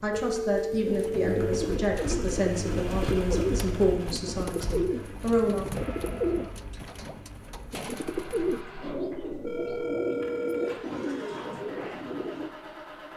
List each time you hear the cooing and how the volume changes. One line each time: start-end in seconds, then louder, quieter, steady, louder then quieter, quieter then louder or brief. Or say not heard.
0.8-12.5 steady.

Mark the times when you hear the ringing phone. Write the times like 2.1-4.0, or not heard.
0.1-1.5, 5.7-6.5, 9.4-10.8.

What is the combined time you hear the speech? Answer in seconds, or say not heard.
6 s.